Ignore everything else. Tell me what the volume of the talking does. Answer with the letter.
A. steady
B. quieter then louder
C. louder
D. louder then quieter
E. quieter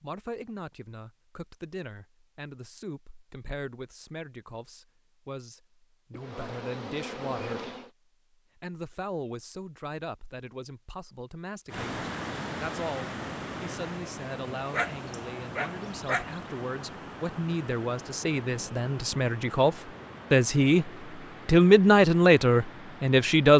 C.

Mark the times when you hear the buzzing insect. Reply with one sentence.
The buzzing insect can be heard from 6.1 to 7.9 s.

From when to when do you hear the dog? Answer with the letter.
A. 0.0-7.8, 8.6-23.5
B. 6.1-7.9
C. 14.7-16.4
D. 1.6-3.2
C.